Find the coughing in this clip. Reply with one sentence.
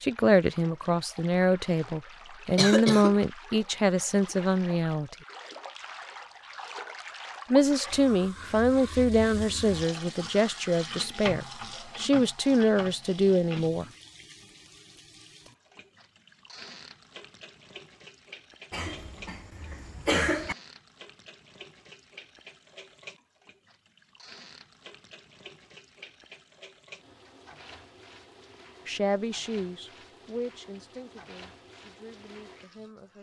You can hear the coughing from 2.5 to 3.1 s and from 18.7 to 20.6 s.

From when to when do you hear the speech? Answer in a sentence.
You can hear the speech from 0.0 to 5.2 s, from 7.5 to 13.8 s and from 28.9 to 33.1 s.